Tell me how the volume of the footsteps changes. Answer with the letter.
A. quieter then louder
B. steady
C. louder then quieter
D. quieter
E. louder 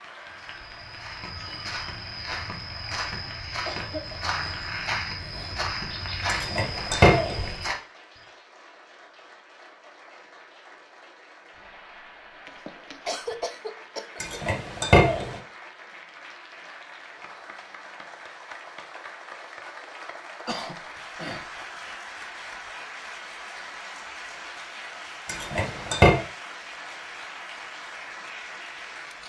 E.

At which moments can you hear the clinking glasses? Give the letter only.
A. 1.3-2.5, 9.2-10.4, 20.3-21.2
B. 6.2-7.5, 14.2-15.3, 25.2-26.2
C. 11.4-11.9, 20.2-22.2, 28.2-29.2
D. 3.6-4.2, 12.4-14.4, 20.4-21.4
B.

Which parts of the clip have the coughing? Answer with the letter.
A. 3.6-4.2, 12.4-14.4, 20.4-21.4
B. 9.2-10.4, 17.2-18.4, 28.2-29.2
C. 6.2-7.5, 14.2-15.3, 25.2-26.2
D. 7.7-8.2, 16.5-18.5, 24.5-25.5
A.